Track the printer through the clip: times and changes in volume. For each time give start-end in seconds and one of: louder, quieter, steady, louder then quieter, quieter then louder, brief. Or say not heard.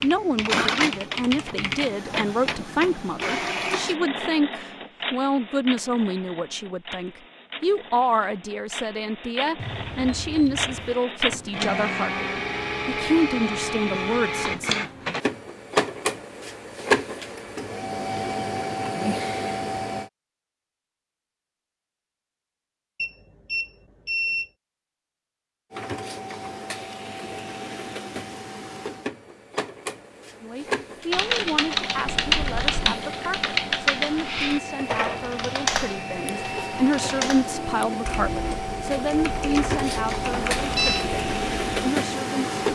0.1-20.1 quieter then louder
25.7-42.6 louder.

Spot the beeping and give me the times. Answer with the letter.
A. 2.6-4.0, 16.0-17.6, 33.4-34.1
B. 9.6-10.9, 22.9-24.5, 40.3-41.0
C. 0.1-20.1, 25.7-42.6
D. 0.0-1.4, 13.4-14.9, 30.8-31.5
B.